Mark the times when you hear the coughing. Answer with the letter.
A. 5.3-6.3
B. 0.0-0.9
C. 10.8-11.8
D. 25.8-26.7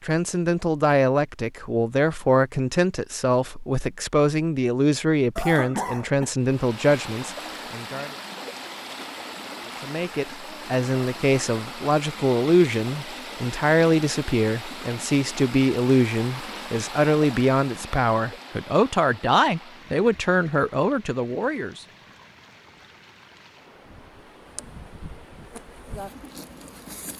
A.